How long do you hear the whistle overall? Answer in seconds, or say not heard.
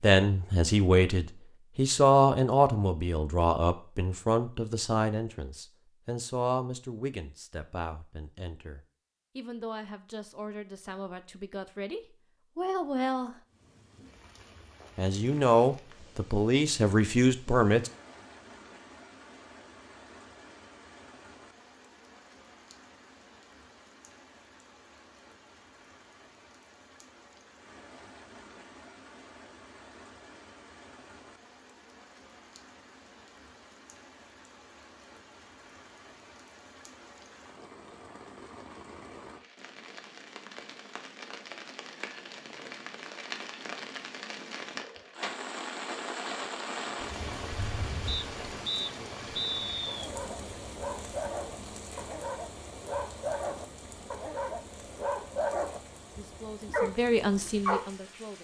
2 s.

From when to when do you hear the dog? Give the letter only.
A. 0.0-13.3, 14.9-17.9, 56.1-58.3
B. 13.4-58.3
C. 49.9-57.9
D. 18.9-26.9
C.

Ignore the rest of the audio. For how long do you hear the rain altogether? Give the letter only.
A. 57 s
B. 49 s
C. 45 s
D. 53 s
C.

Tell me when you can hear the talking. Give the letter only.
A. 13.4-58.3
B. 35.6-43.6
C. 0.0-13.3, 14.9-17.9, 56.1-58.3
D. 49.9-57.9
C.